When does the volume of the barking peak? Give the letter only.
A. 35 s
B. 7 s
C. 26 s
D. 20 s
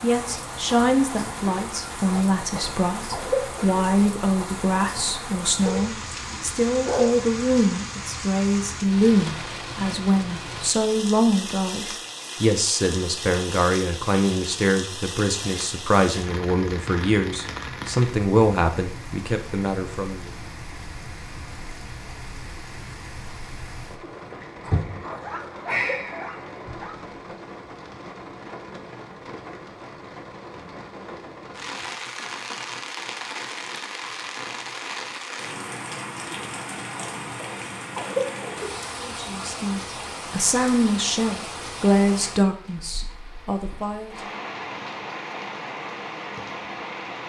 B.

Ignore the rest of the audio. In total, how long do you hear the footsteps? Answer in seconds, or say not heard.
not heard.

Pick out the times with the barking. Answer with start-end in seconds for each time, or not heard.
5.7-7.2, 25.0-26.9.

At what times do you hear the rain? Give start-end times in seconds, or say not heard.
0.0-47.2.